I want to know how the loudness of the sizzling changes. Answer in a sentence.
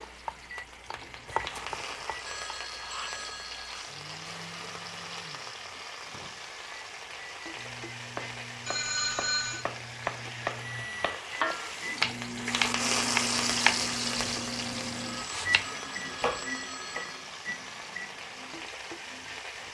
The loudness of the sizzling goes up, then down.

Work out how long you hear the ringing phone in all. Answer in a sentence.
You can hear the ringing phone for 5 seconds altogether.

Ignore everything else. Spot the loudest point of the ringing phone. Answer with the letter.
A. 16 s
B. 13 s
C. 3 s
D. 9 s
D.